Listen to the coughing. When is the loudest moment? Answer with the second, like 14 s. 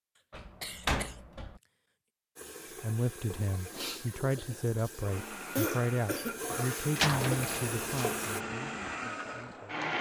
6 s.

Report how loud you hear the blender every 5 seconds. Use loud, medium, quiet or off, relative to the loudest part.
off, loud.